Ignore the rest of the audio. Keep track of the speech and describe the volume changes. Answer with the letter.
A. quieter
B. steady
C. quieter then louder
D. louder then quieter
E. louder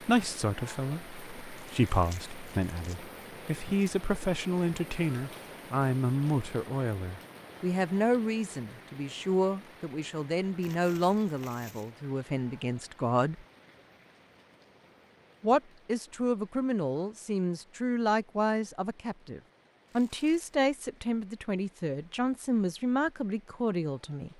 B.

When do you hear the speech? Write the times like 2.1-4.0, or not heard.
0.0-13.4, 15.4-24.3.